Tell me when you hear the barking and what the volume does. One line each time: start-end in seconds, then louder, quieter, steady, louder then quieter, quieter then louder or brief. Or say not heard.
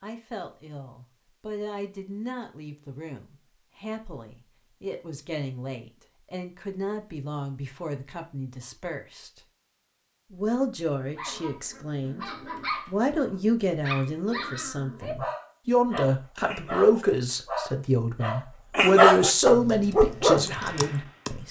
11.1-20.5 louder.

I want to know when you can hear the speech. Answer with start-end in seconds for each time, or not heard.
0.0-9.4, 10.3-12.2, 12.8-21.4.